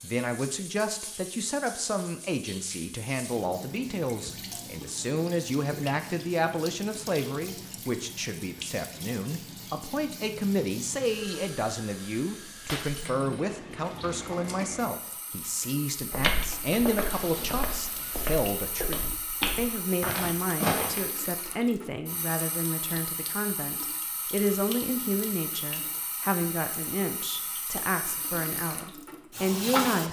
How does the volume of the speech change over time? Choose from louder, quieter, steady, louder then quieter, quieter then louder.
steady.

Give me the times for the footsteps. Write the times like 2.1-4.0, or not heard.
15.9-21.1.